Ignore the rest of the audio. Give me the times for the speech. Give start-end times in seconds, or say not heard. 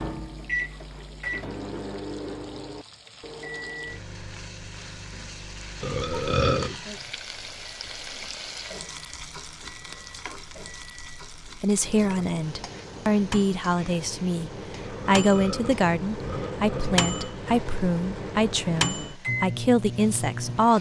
11.6-20.7.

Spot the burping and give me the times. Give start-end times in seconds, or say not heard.
5.8-6.8, 14.8-17.4.